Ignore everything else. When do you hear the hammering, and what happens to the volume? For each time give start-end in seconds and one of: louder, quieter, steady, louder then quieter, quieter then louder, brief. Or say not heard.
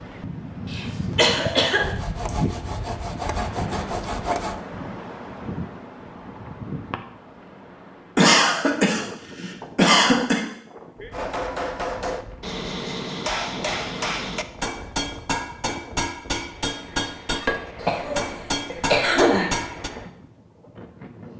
11.1-19.9 steady.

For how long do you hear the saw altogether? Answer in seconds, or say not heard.
3 s.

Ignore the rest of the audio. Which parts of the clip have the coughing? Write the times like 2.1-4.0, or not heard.
0.7-2.3, 8.2-10.4, 17.8-19.5.